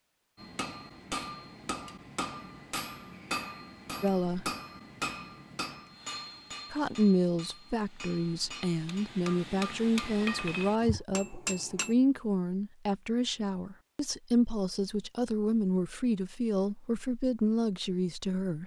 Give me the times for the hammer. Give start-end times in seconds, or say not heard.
0.3-11.9.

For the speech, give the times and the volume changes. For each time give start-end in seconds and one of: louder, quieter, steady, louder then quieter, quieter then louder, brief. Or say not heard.
4.0-4.5 brief
6.7-18.6 steady.